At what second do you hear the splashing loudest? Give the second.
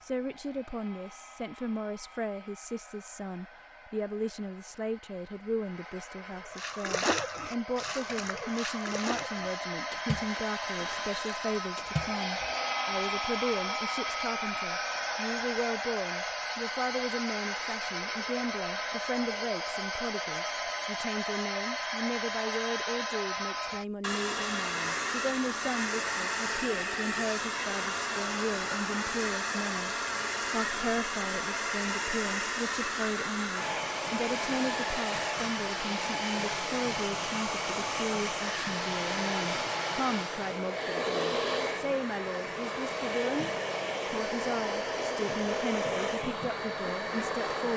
7 s.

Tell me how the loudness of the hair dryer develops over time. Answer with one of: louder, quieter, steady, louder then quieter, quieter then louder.
louder.